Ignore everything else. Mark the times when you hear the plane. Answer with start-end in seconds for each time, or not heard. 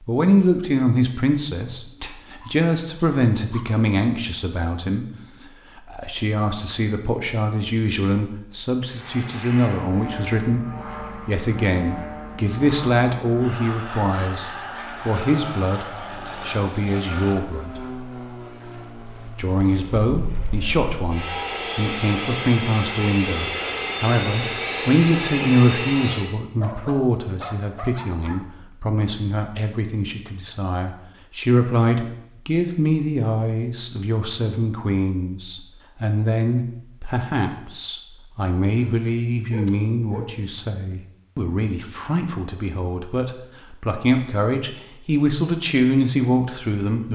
8.9-26.4.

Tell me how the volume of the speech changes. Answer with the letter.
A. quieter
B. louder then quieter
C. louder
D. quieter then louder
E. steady
E.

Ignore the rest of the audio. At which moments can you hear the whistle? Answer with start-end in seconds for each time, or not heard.
not heard.